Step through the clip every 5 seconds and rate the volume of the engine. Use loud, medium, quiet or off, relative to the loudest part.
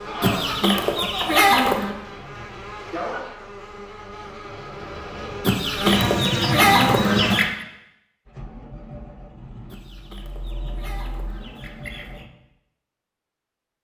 off, loud, loud.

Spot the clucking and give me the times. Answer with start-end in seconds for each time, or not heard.
0.2-1.9, 5.5-7.7, 9.7-12.2.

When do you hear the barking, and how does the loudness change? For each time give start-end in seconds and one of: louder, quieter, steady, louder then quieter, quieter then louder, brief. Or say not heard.
not heard.